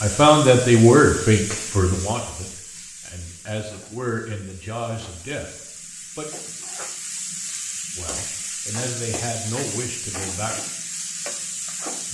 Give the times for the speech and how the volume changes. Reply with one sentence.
The speech can be heard from 0.0 to 5.5 s, getting quieter then louder; and briefly from 8.0 to 10.6 s.